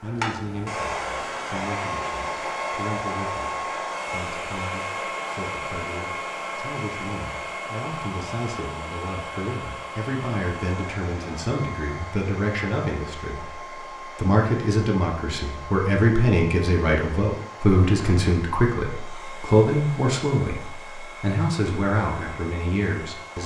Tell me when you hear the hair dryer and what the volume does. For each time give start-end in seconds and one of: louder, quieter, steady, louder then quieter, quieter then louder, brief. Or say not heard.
0.0-23.4 quieter.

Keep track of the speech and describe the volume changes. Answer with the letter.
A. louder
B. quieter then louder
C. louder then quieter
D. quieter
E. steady
A.